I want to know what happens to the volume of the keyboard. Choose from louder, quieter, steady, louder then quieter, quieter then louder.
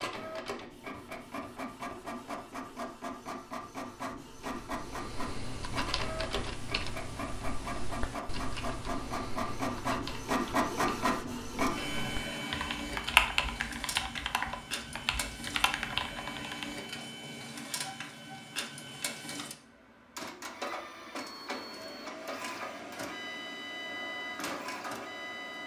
louder then quieter.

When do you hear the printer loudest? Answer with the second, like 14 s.
11 s.